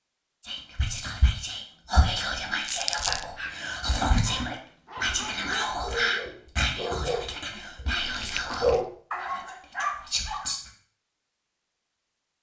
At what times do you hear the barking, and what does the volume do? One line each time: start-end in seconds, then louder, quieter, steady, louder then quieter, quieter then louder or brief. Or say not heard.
3.0-10.6 louder.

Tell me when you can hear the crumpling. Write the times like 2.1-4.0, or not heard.
2.6-3.2, 8.1-8.8.